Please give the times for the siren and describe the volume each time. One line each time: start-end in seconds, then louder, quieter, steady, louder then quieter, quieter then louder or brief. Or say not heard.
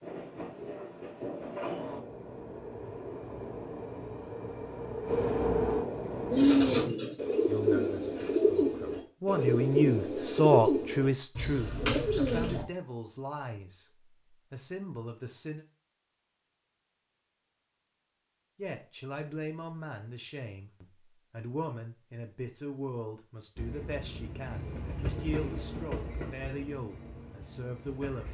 not heard.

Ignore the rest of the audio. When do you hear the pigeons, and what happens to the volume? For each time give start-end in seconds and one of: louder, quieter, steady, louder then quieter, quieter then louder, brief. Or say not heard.
6.3-12.7 steady.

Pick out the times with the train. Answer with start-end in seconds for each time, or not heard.
0.0-6.9, 23.6-28.2.